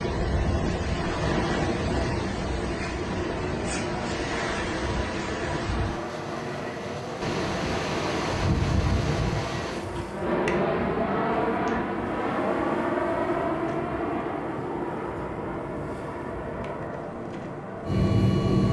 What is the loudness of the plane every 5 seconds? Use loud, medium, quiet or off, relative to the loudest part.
medium, medium, loud, loud.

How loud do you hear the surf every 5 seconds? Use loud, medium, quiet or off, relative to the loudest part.
loud, loud, quiet, quiet.